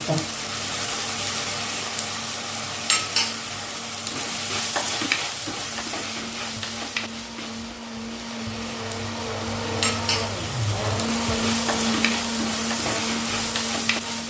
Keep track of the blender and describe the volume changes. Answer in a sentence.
The loudness of the blender goes up.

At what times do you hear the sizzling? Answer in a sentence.
The sizzling can be heard from 0.0 to 14.2 s.